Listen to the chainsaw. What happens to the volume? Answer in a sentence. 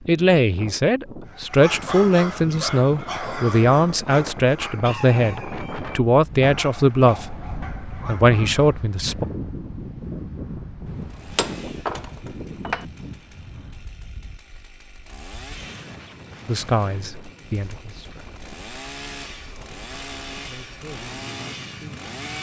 The volume of the chainsaw goes up.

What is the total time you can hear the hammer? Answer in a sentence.
You can hear the hammer for 2 seconds altogether.